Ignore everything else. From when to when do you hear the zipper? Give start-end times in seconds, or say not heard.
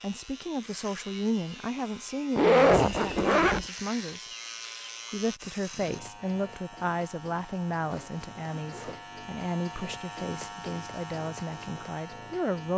2.4-3.6, 7.9-9.1.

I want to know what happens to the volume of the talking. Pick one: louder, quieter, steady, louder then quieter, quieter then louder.
steady.